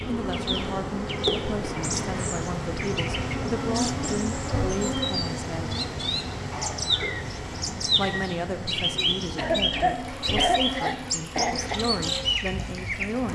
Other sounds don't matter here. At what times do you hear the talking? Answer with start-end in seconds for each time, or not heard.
0.1-5.8, 7.8-13.2.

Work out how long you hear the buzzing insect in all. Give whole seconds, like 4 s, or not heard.
13 s.